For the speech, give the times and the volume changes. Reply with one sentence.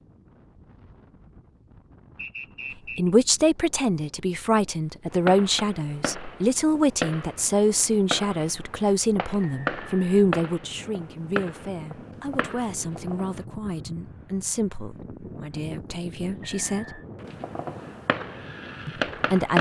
The speech can be heard from 3.0 to 17.0 s, getting quieter; and briefly from 18.9 to 19.5 s.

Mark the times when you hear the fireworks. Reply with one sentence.
The fireworks can be heard from 5.1 to 13.4 s and from 17.2 to 19.5 s.